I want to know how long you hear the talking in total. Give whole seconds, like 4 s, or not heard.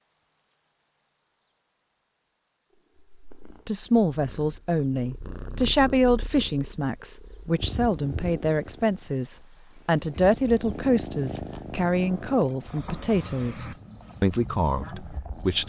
12 s.